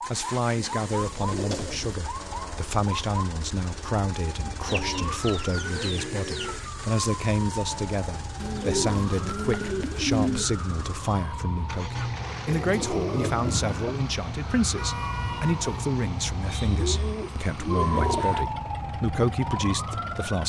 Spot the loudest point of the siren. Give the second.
18 s.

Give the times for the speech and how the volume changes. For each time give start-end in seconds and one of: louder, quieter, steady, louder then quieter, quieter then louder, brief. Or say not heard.
0.1-20.4 steady.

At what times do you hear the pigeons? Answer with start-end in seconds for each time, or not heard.
0.6-1.9, 4.7-6.7, 8.4-10.5, 12.4-13.9, 16.4-18.4.